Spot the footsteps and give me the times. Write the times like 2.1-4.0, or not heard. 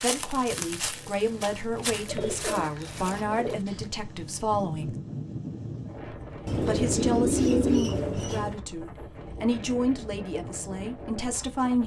0.0-3.9.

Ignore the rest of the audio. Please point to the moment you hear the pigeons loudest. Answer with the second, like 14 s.
8 s.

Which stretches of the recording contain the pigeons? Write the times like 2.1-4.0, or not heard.
2.0-3.6, 6.5-8.6.